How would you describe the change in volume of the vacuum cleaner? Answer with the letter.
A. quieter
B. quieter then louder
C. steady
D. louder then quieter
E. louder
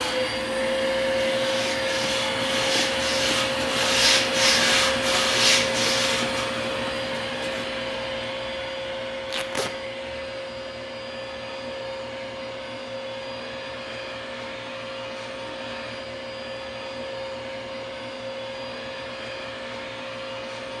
A.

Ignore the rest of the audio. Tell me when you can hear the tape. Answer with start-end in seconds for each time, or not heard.
9.2-9.8.